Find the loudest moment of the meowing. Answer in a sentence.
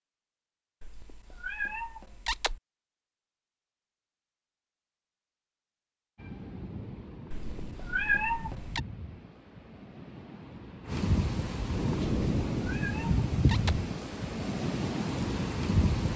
The loudest moment of the meowing is at 8 seconds.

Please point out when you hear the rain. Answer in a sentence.
The rain can be heard from 6.2 to 16.1 s.